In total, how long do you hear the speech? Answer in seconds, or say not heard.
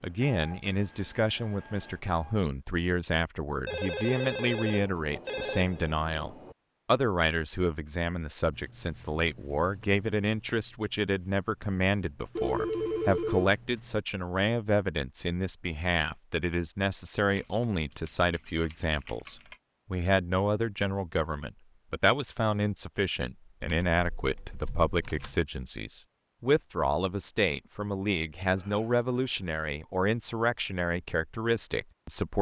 32 s.